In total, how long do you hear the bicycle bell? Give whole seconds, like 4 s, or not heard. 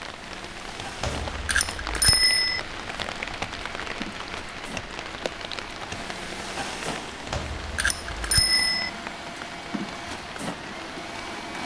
3 s.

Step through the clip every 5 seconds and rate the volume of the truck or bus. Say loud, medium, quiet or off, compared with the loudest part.
medium, loud, loud.